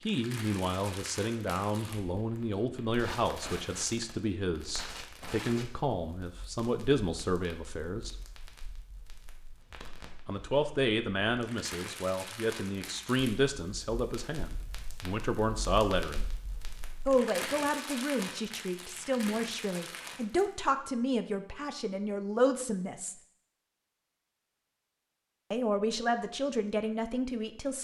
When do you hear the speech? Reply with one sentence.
You can hear the speech from 0.1 to 8.2 s, from 10.2 to 16.2 s, from 17.1 to 23.1 s and from 25.5 to 27.7 s.